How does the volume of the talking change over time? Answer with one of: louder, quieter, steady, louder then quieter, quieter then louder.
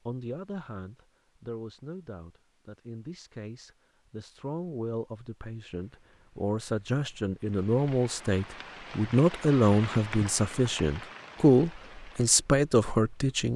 louder.